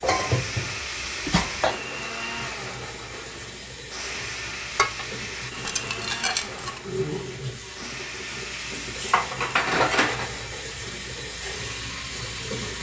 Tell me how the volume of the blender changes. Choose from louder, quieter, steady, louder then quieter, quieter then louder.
quieter.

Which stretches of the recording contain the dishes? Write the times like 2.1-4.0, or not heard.
0.0-1.8, 4.8-6.8, 9.1-10.3.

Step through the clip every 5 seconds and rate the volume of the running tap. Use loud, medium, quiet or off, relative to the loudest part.
medium, loud, loud.